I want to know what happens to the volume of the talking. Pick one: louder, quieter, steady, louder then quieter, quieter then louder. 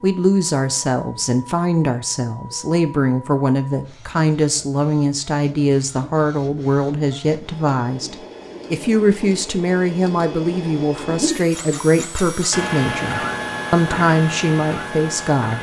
steady.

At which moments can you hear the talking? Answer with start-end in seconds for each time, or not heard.
0.0-15.5.